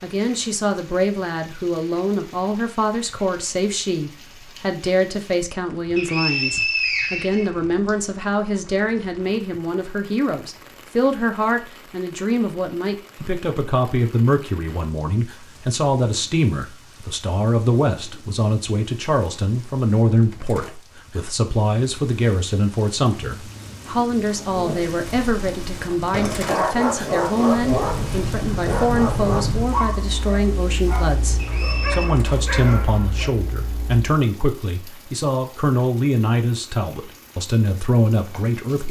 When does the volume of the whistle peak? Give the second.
7 s.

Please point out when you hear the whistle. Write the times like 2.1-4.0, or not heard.
6.0-7.9, 31.4-32.1.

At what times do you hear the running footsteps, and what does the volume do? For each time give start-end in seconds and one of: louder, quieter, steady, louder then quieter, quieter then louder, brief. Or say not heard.
not heard.